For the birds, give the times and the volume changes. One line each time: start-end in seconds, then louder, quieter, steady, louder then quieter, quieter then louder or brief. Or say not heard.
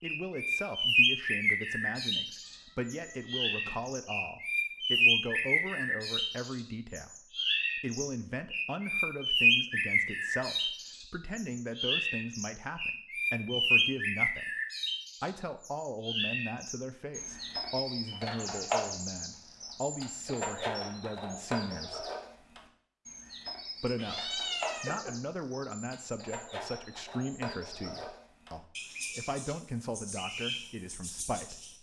0.0-31.7 quieter.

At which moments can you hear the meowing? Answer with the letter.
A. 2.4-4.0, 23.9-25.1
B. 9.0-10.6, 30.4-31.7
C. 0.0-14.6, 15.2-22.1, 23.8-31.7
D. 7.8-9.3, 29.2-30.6
A.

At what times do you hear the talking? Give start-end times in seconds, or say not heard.
0.0-14.6, 15.2-22.1, 23.8-31.7.